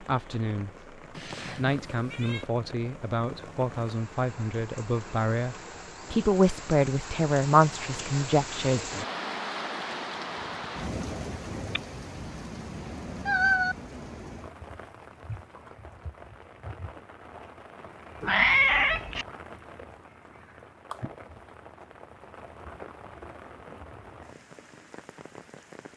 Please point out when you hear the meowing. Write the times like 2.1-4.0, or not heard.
1.1-2.5, 11.8-13.8, 18.2-19.2.